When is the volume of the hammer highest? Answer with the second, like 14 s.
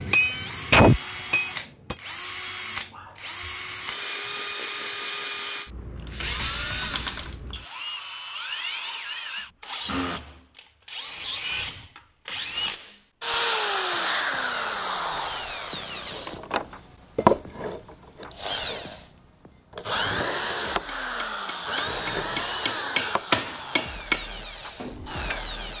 1 s.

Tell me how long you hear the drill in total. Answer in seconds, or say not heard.
26 s.